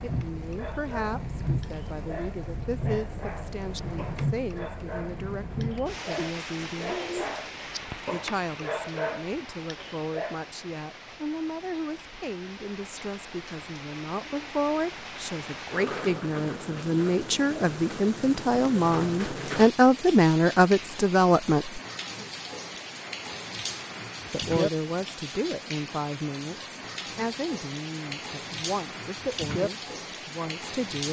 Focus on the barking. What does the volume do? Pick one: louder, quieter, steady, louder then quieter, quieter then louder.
louder.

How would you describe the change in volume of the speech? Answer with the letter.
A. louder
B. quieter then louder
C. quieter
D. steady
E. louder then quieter
E.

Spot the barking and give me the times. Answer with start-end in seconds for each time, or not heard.
0.0-10.4.